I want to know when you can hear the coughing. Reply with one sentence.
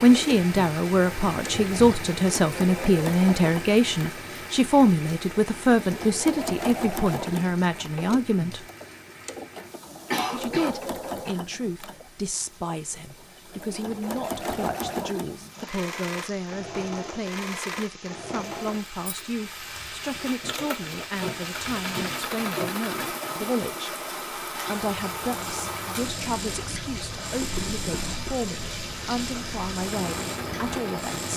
The coughing can be heard from 10.1 to 10.8 s.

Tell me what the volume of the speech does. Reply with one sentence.
The volume of the speech goes down.